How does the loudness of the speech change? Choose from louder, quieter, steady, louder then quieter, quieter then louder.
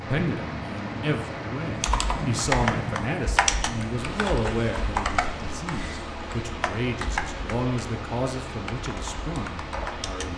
steady.